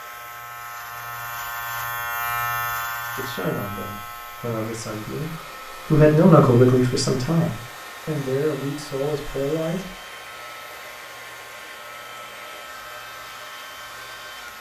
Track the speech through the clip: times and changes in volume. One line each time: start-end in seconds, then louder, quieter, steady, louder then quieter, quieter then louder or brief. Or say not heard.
3.1-9.9 louder then quieter.